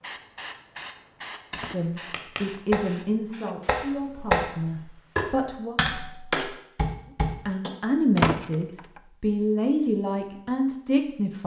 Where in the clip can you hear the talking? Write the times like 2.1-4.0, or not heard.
1.6-5.8, 7.5-11.4.